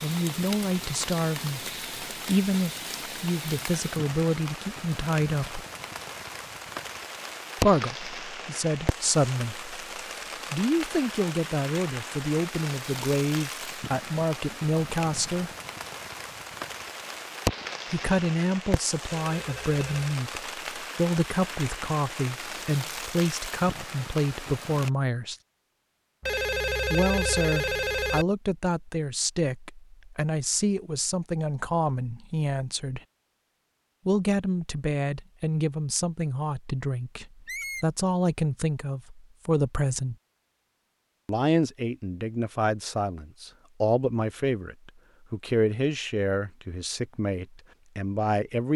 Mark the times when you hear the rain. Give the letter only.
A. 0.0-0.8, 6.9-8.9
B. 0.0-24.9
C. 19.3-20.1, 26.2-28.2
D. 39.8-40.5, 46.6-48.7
B.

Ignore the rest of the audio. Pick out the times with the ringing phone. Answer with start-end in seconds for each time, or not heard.
19.3-20.1, 26.2-28.2.